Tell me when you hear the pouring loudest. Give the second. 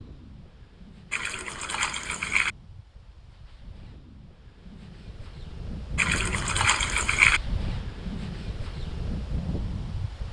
7 s.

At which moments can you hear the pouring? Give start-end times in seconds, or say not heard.
1.1-2.5, 6.0-7.4.